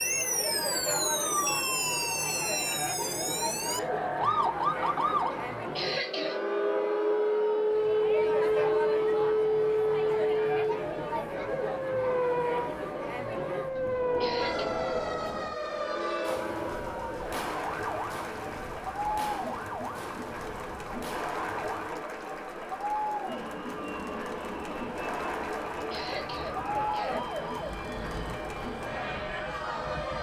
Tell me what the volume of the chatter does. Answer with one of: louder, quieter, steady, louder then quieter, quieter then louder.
steady.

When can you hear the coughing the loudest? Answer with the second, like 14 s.
6 s.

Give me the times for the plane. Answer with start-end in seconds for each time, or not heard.
23.2-30.1.